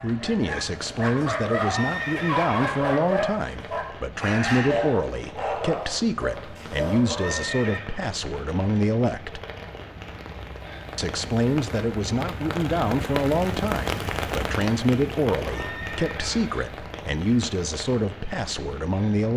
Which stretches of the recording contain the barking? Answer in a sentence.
The barking can be heard from 0.0 to 7.5 s.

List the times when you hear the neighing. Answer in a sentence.
The neighing can be heard from 1.6 to 3.0 s, from 7.0 to 7.9 s and from 15.4 to 16.5 s.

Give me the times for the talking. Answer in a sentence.
The talking can be heard from 0.0 to 9.4 s and from 10.9 to 19.3 s.